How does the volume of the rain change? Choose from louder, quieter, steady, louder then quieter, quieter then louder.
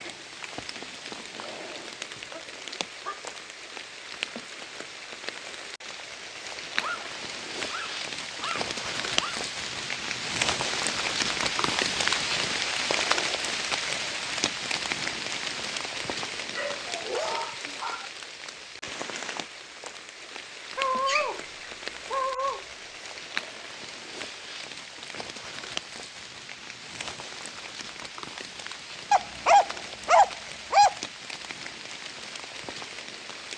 louder then quieter.